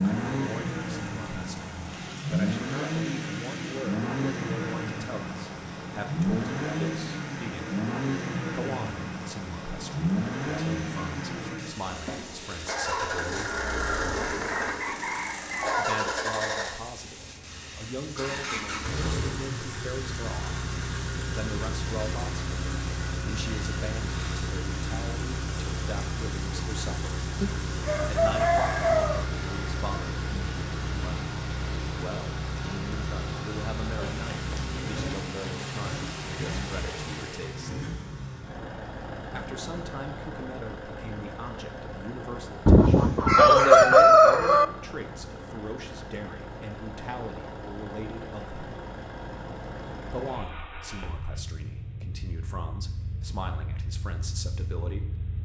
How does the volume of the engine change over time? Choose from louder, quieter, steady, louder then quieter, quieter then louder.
quieter.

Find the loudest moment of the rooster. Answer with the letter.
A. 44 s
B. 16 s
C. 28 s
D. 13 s
A.